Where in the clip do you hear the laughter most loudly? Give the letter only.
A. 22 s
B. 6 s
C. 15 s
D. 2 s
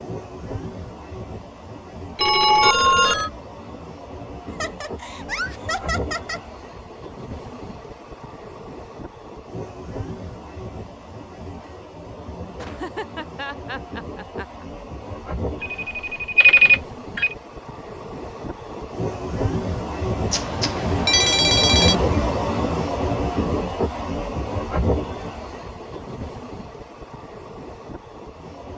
B.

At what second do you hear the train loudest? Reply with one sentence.
The volume of the train peaks at 22 seconds.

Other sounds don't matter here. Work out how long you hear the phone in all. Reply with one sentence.
You can hear the phone for 5 seconds altogether.